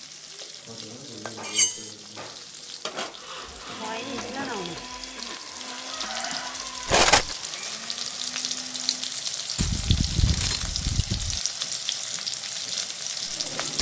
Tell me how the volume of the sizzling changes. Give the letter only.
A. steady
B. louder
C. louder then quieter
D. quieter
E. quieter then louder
B.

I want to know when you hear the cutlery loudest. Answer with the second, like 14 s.
7 s.